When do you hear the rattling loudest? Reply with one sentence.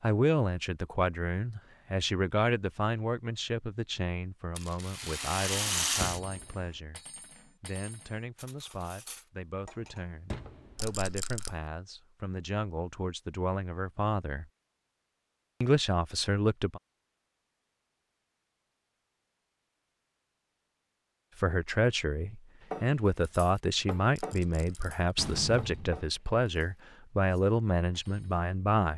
The volume of the rattling peaks at 6 seconds.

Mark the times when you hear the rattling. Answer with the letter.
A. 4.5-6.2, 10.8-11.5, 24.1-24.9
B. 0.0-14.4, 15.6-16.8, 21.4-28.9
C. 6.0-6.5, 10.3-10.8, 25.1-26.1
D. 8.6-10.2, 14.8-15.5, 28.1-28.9
A.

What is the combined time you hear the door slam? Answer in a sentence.
The door slam can be heard for 2 seconds in total.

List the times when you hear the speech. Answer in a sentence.
The speech can be heard from 0.0 to 14.4 s, from 15.6 to 16.8 s and from 21.4 to 28.9 s.